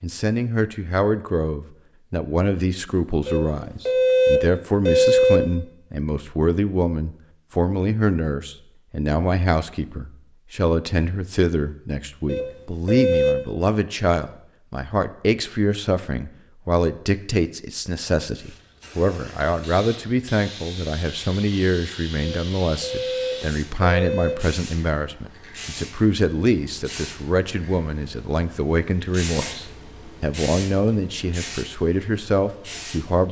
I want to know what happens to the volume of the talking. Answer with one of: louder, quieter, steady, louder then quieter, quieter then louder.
steady.